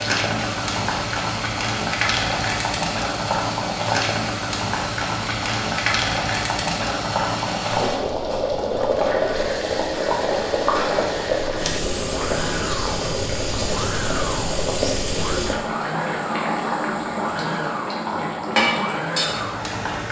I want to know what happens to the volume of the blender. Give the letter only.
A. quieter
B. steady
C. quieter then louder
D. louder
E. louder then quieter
B.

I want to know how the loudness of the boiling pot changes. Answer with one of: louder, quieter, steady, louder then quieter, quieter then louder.
steady.